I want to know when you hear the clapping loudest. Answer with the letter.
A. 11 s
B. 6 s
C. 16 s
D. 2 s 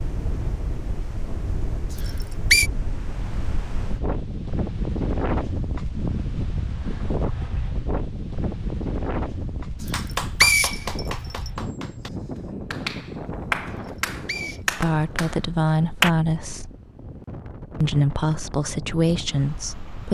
C.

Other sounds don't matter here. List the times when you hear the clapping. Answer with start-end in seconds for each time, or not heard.
9.9-16.1.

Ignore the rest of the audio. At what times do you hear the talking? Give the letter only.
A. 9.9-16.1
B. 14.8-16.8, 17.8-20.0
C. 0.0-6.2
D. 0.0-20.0
B.